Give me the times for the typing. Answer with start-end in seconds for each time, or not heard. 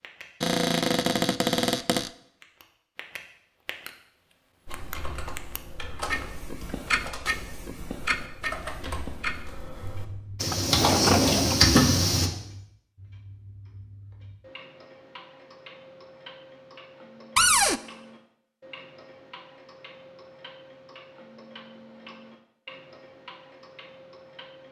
4.7-12.3.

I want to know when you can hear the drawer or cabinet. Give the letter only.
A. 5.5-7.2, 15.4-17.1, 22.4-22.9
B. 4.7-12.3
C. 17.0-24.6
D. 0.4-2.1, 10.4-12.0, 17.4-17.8
D.